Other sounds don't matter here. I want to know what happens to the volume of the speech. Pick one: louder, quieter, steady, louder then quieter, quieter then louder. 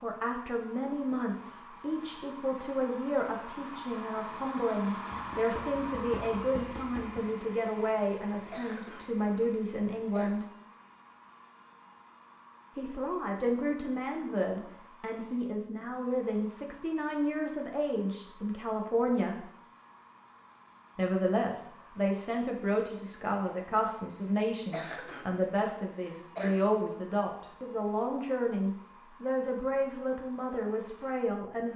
steady.